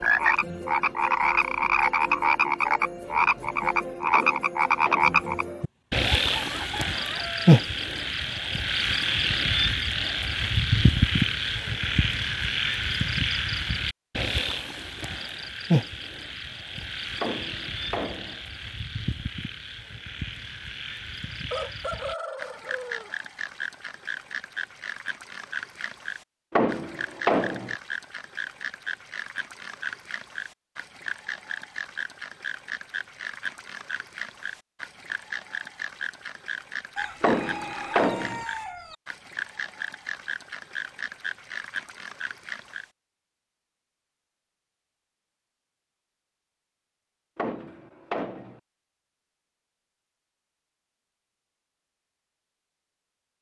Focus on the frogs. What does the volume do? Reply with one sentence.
The volume of the frogs goes down.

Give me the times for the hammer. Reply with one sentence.
You can hear the hammer from 4.1 to 5.3 s, from 17.2 to 18.4 s, from 26.5 to 27.8 s, from 37.2 to 38.5 s and from 47.4 to 48.6 s.